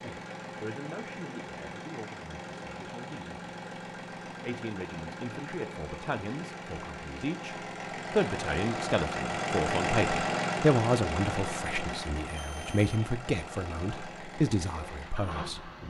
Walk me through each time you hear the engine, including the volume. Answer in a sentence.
You can hear the engine from 0.0 to 15.8 s, getting louder then quieter.